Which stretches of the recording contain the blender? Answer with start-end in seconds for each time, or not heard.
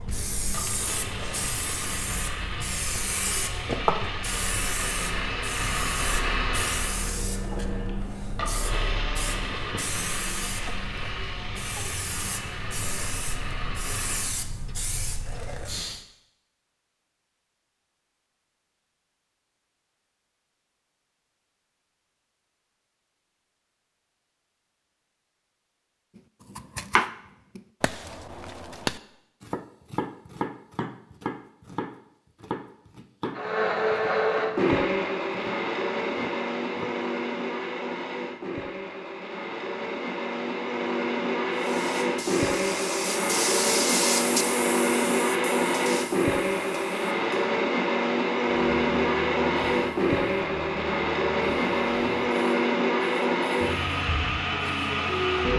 0.0-14.4, 33.3-55.5.